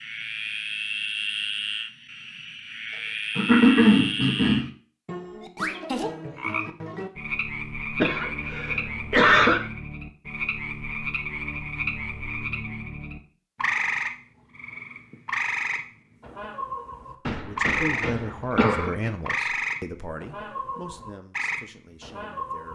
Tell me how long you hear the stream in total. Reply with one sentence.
You can't hear the stream here.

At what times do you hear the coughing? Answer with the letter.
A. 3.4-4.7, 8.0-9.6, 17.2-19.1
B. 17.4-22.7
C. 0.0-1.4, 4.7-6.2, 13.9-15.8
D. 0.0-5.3
A.